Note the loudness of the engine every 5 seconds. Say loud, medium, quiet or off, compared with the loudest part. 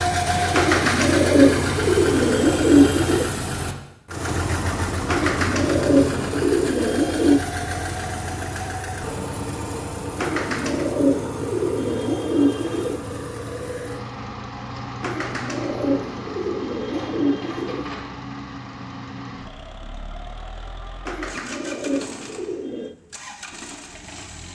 loud, loud, medium, medium, quiet.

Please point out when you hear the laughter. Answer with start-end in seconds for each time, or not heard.
not heard.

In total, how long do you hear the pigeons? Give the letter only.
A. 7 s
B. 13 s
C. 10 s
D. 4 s
B.